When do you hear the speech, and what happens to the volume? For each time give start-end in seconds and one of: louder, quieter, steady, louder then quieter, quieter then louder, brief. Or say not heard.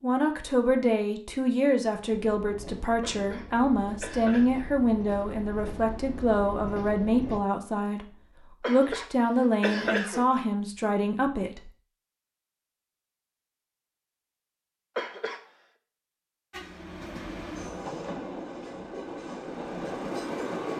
0.0-11.7 steady.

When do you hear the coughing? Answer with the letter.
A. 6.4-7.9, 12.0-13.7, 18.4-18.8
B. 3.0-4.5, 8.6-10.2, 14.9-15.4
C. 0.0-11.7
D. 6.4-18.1
B.